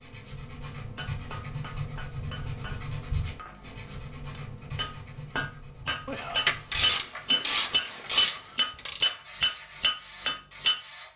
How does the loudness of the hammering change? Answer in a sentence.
The loudness of the hammering goes up.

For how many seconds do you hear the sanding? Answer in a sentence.
You can hear the sanding for 11 seconds altogether.